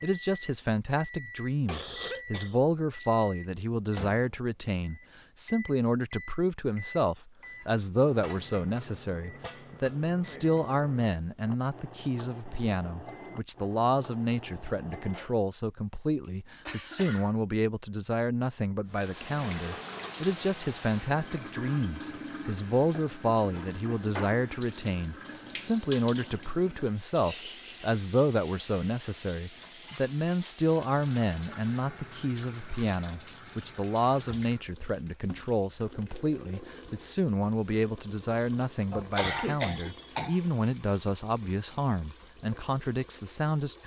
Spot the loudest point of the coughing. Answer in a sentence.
The loudest moment of the coughing is at 39 seconds.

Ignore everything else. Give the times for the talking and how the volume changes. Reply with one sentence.
You can hear the talking from 0.0 to 43.8 s, at a steady volume.